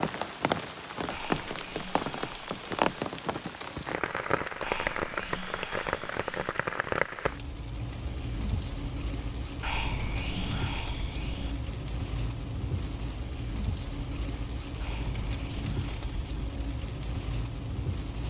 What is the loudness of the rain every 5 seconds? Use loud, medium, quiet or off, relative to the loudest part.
loud, loud, medium, medium.